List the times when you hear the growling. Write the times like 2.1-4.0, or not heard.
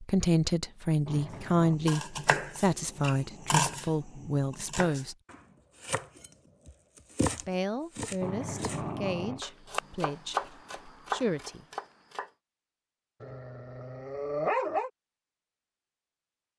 1.1-1.8, 8.2-9.4, 13.2-14.9.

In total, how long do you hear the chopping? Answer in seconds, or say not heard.
11 s.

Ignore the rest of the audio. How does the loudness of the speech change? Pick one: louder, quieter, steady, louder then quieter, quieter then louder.
quieter.